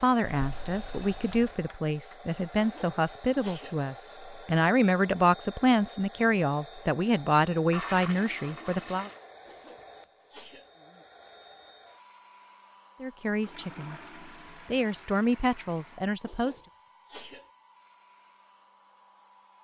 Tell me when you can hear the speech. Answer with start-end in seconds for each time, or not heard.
0.0-9.1, 13.0-16.6.